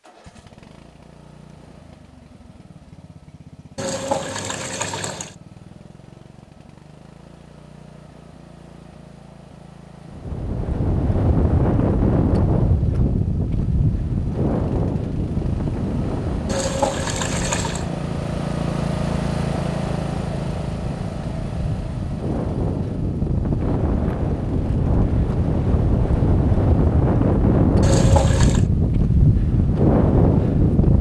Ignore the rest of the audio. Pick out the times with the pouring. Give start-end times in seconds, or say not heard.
3.8-5.3, 16.4-17.9, 27.8-28.6.